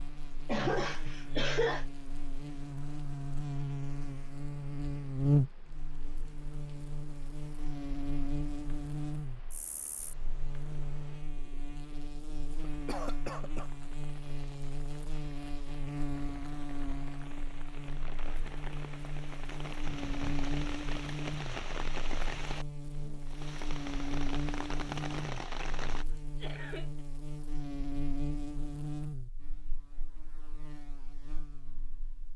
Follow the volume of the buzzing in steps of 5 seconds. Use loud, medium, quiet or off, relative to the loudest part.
medium, loud, medium, medium, medium, medium, quiet.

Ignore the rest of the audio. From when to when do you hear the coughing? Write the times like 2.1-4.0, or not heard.
0.5-1.9, 12.6-13.7, 26.1-27.1.